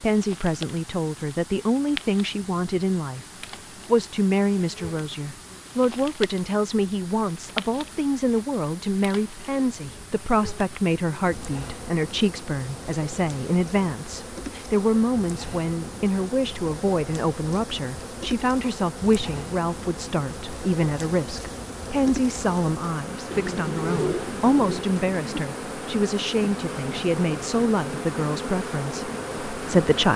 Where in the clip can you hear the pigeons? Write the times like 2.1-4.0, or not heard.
23.3-24.9.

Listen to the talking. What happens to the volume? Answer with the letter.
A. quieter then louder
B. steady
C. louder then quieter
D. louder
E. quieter
B.